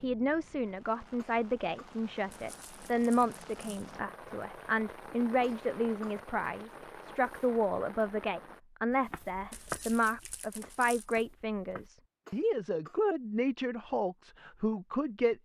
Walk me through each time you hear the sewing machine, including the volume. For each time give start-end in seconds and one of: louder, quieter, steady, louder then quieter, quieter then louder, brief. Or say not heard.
not heard.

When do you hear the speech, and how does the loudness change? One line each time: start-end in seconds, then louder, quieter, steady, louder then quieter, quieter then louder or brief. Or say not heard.
0.0-15.3 steady.